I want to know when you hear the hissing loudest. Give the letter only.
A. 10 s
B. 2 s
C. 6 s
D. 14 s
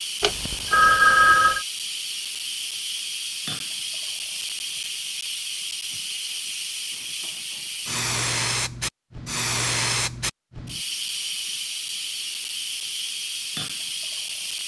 A.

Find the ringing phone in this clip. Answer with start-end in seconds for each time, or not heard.
0.2-1.6.